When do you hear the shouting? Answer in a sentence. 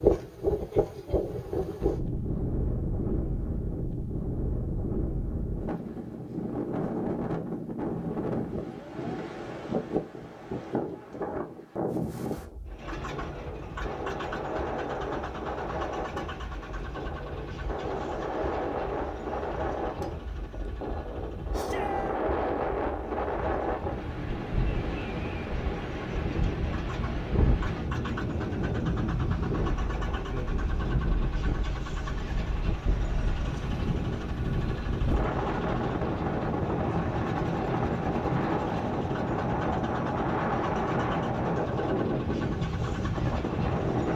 You can hear the shouting from 21.5 to 22.2 s.